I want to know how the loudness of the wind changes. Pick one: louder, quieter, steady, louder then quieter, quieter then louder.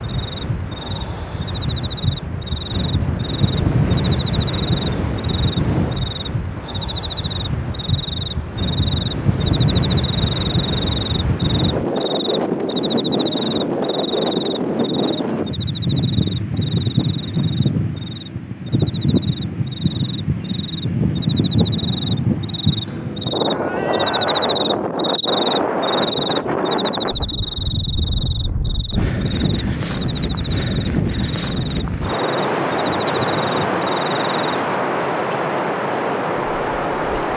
steady.